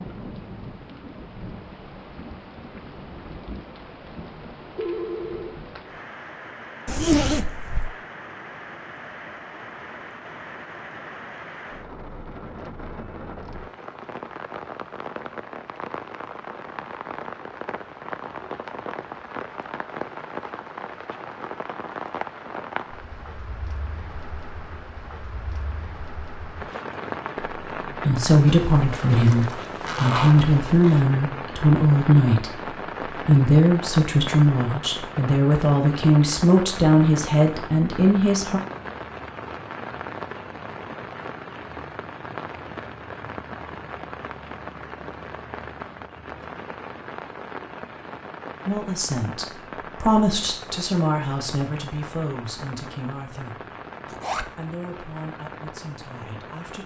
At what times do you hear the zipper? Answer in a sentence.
You can hear the zipper from 6.8 to 7.9 s, from 28.4 to 31.0 s and from 54.0 to 54.5 s.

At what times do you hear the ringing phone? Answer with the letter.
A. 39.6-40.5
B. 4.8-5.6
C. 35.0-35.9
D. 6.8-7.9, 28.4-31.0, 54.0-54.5
B.